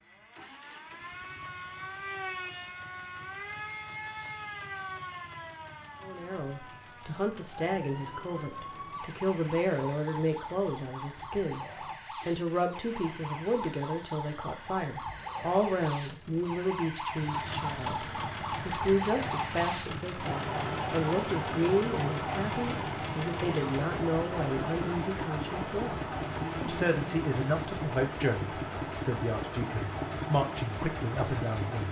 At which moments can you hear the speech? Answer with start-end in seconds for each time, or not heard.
6.0-11.6, 12.2-31.8.